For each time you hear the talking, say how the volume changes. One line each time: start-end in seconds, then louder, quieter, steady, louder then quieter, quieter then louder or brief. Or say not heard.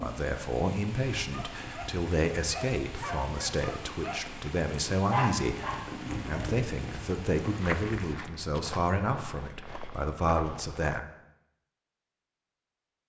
0.0-11.0 steady.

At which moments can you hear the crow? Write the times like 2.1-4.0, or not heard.
not heard.